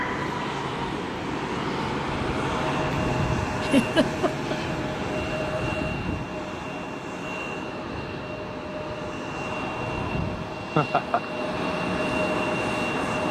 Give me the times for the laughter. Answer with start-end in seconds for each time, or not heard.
3.6-4.5, 10.8-11.2.